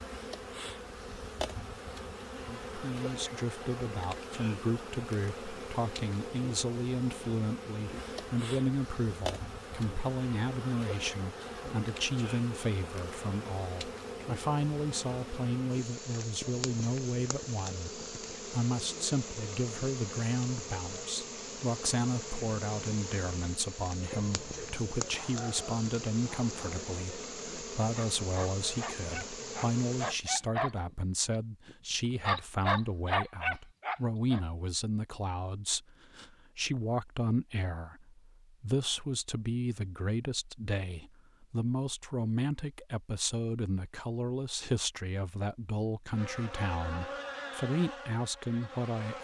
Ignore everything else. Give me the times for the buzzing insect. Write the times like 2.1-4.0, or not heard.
0.0-30.2, 46.1-49.1.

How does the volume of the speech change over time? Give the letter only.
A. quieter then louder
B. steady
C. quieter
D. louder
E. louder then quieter
B.